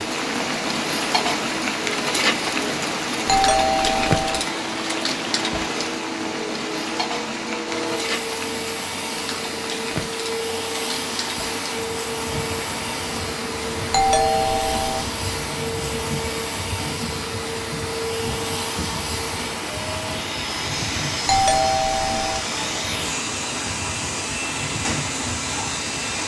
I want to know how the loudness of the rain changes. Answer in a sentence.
The loudness of the rain goes down.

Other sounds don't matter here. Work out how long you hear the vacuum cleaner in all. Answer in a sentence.
You can hear the vacuum cleaner for 26 seconds altogether.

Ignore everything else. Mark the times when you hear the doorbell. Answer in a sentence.
The doorbell can be heard from 3.2 to 4.5 s, from 13.9 to 15.1 s and from 21.2 to 22.4 s.